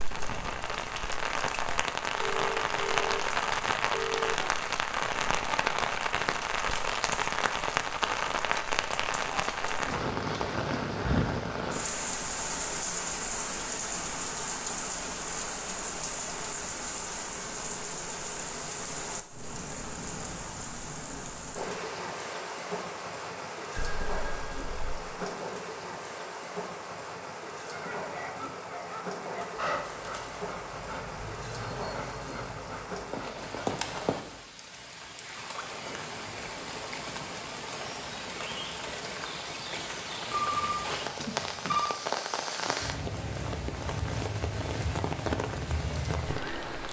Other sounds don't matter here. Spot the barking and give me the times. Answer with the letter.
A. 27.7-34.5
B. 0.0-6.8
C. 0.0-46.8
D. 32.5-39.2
A.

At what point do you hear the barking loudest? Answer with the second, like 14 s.
30 s.